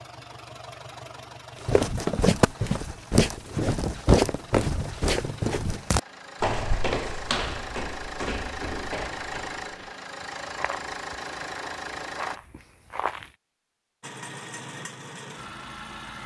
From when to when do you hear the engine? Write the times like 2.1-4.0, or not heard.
0.0-12.4, 14.0-16.2.